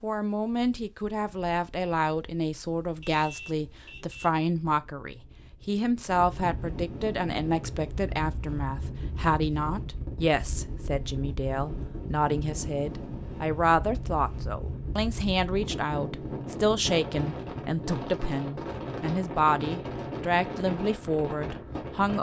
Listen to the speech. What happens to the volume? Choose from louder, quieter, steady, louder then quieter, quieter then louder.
steady.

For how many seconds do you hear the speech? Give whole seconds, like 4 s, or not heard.
22 s.